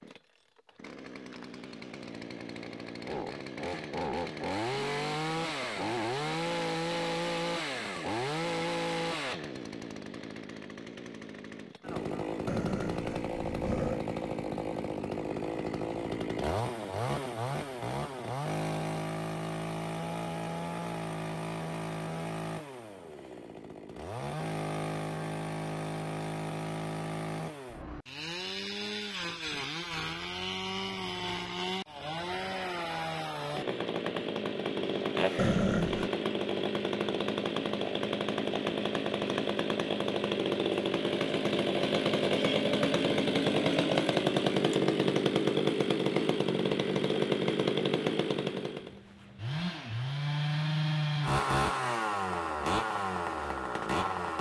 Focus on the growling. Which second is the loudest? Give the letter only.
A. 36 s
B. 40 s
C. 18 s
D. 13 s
A.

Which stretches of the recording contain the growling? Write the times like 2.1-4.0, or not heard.
12.4-14.1, 35.4-36.1.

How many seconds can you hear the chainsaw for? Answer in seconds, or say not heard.
54 s.